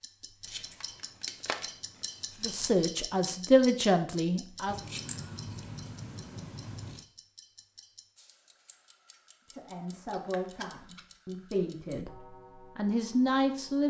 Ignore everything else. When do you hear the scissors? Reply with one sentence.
You can hear the scissors from 0.5 to 2.6 s, from 4.7 to 7.0 s and from 10.1 to 11.1 s.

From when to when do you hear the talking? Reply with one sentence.
You can hear the talking from 2.4 to 4.8 s and from 9.5 to 13.8 s.